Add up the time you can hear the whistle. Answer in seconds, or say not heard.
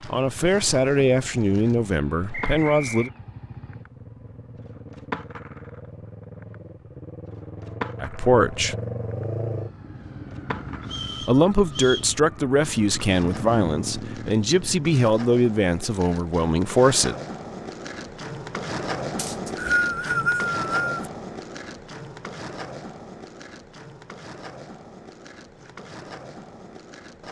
4 s.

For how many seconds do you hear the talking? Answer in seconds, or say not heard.
10 s.